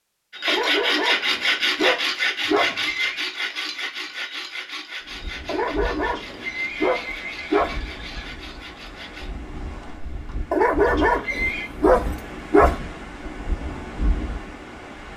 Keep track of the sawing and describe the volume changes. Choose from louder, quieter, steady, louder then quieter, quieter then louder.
quieter.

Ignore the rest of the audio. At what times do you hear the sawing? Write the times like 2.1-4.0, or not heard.
0.3-9.3.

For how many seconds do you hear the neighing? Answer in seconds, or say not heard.
4 s.